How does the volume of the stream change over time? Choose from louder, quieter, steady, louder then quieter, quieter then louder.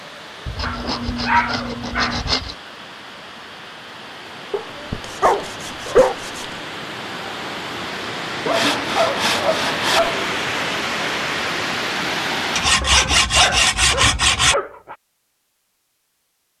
louder.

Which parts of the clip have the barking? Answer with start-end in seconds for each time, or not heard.
0.6-2.2, 4.5-6.2, 8.4-10.2, 12.8-14.9.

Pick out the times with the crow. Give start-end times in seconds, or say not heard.
not heard.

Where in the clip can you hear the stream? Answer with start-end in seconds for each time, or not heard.
0.0-12.8.